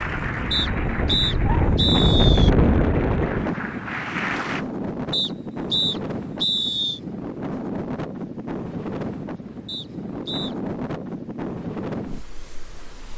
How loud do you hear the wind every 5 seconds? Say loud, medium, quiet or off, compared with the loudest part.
loud, medium, medium.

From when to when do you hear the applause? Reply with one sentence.
You can hear the applause from 0.0 to 4.7 s.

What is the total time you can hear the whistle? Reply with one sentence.
The whistle can be heard for 5 seconds in total.